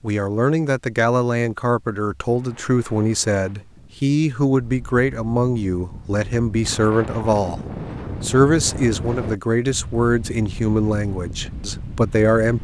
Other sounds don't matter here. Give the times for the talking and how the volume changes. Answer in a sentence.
The talking can be heard from 0.0 to 7.6 s, at a steady volume; and from 8.2 to 12.6 s, at a steady volume.